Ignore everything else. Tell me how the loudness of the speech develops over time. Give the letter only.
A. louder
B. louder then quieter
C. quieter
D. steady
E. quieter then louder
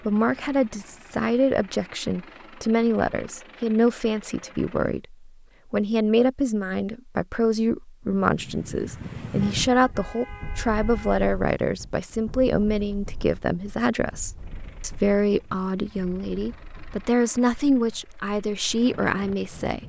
D.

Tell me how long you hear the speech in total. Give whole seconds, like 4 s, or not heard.
20 s.